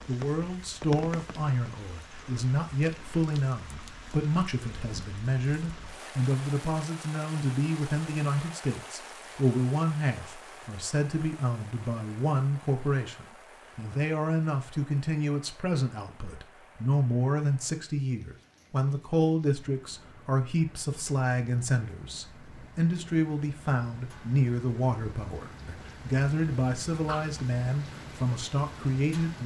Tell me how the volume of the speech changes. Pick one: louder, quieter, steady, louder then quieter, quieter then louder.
steady.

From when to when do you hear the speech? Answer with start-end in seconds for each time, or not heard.
0.1-29.4.